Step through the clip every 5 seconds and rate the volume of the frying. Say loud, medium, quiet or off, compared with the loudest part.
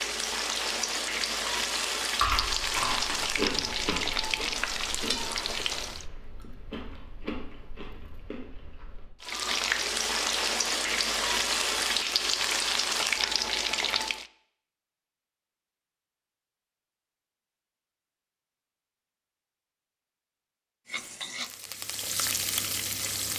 loud, loud, loud, off, medium.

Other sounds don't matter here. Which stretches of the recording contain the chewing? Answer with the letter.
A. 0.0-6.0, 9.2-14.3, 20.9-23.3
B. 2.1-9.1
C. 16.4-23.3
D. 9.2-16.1
B.